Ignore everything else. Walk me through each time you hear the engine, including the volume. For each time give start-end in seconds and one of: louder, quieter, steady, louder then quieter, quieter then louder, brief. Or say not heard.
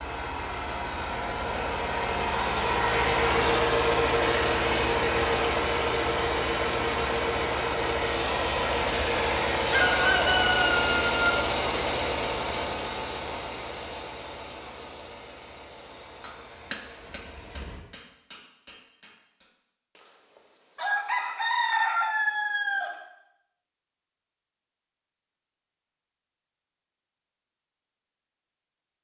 0.0-17.9 quieter.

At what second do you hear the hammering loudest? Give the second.
17 s.